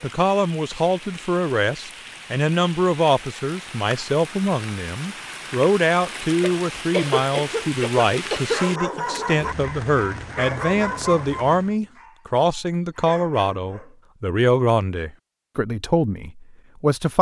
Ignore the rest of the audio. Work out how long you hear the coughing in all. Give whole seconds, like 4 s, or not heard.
2 s.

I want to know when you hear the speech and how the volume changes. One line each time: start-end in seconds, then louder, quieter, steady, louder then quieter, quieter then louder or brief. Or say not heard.
0.0-17.1 steady.